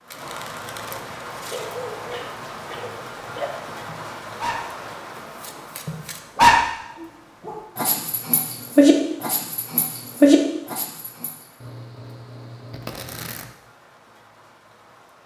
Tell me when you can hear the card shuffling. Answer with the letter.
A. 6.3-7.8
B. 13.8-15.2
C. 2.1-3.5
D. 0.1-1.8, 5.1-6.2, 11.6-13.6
D.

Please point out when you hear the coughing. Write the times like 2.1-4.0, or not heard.
2.1-3.5.